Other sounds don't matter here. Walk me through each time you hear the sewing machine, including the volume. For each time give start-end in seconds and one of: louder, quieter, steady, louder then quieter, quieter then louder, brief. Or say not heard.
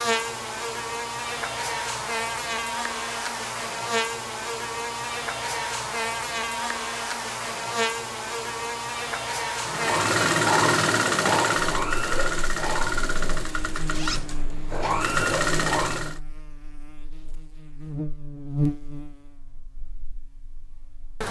9.6-16.2 quieter then louder.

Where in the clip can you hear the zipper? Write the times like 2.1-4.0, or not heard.
13.9-14.3.